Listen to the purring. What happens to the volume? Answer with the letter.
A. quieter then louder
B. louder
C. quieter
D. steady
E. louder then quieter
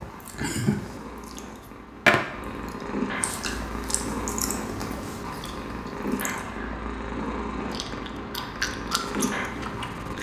B.